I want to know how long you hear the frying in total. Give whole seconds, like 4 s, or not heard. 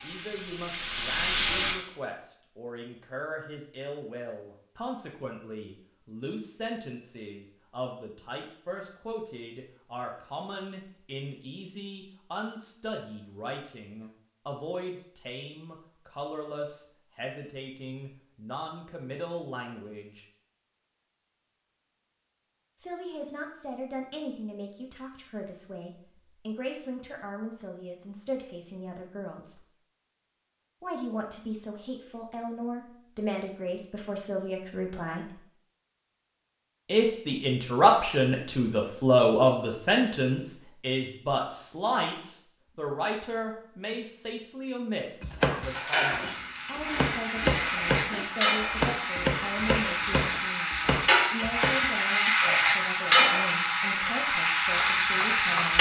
12 s.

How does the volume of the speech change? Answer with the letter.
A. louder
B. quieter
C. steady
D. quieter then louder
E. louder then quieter
E.